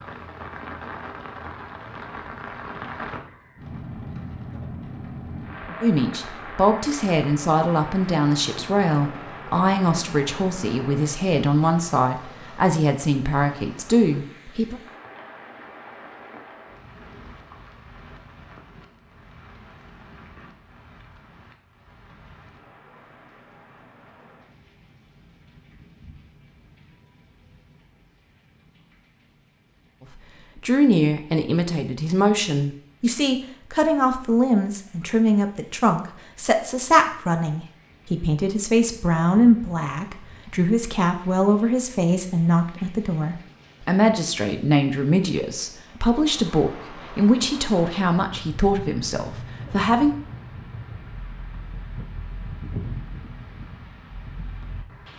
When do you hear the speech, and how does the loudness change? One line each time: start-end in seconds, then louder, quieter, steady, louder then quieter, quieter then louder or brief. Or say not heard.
5.8-14.8 steady
30.1-50.1 steady.